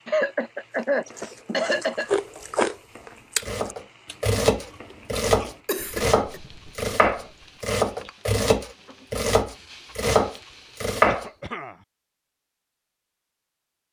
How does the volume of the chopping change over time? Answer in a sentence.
The loudness of the chopping stays about the same.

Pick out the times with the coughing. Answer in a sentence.
The coughing can be heard from 0.1 to 2.2 s, from 5.7 to 6.4 s and from 11.1 to 11.8 s.